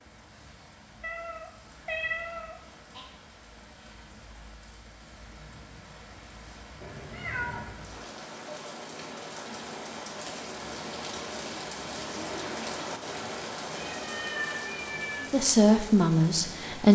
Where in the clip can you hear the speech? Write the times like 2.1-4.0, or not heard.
15.3-16.9.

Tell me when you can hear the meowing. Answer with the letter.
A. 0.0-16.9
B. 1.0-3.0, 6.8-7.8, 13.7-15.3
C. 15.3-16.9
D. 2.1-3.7
B.